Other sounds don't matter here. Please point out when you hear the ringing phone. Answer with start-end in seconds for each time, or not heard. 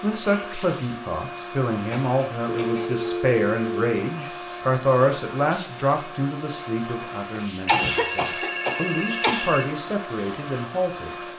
2.5-3.9, 7.7-9.7.